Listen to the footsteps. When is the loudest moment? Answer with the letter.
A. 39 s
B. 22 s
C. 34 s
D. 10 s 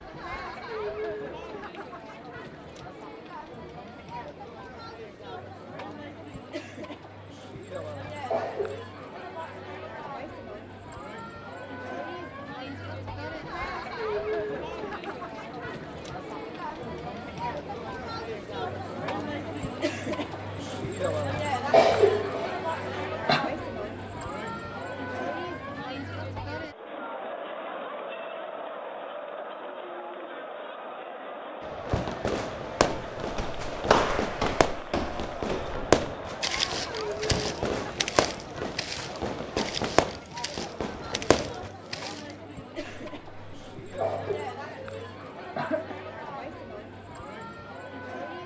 C.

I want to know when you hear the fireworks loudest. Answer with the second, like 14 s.
36 s.